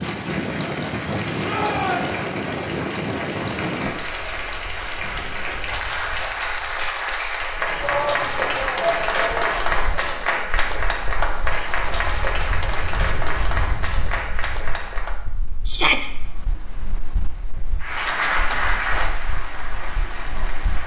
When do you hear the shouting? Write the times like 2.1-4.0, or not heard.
1.4-2.2, 7.8-10.2, 15.7-16.1.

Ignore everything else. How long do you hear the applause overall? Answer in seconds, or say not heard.
18 s.